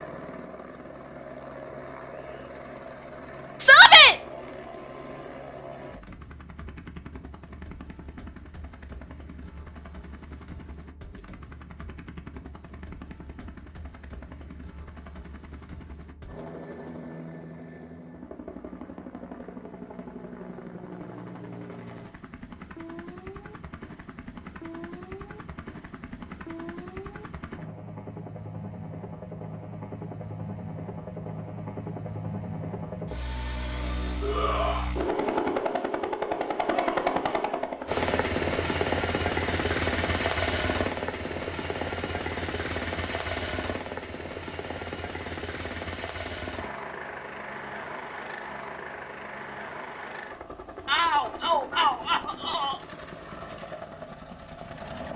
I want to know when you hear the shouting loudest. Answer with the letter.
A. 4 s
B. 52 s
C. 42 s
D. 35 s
A.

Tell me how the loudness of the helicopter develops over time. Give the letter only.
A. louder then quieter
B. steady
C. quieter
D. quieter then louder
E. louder
A.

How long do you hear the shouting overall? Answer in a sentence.
You can hear the shouting for 3 seconds altogether.